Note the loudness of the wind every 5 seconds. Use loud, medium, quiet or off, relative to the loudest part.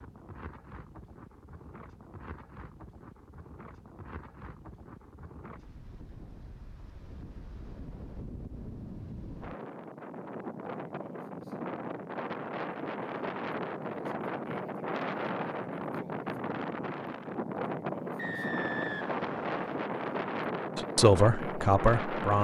quiet, quiet, loud, loud, loud.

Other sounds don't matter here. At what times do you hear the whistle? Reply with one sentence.
You can hear the whistle from 18.1 to 19.6 s.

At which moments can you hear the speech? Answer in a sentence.
You can hear the speech from 20.8 to 22.3 s.